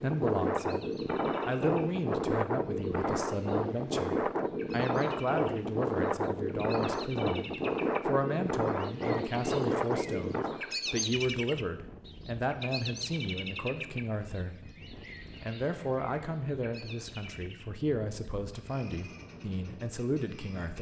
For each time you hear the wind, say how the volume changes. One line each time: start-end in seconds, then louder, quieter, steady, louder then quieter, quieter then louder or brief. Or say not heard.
0.0-20.7 quieter.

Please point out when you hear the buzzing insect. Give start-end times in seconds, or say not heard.
not heard.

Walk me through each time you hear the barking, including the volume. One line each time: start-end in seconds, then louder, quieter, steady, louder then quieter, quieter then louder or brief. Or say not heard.
not heard.